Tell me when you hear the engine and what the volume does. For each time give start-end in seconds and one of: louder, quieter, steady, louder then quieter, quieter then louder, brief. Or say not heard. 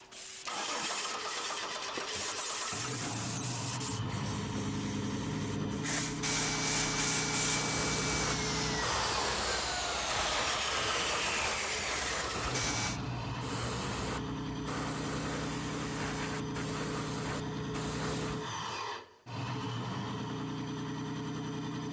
0.0-21.8 steady.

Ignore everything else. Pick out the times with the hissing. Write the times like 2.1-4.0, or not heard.
0.0-18.4.